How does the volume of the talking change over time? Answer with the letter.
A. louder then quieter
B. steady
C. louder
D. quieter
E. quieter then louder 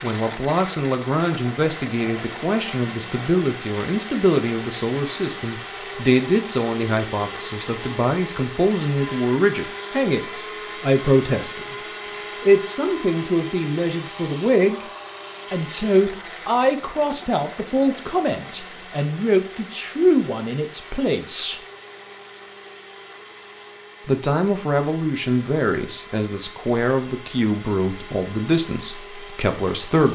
B.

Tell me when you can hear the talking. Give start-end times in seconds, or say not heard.
0.0-14.8, 15.5-21.6, 24.1-30.0.